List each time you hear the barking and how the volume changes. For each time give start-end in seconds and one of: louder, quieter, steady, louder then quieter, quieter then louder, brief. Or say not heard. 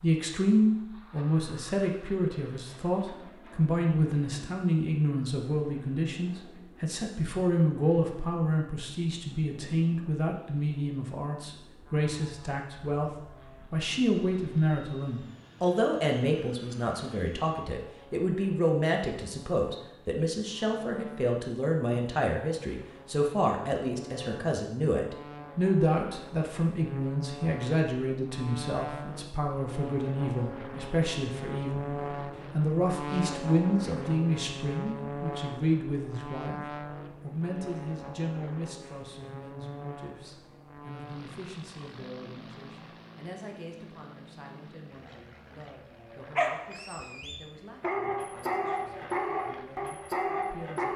46.4-50.9 louder.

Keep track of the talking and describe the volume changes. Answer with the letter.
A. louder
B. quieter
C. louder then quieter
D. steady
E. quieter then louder
B.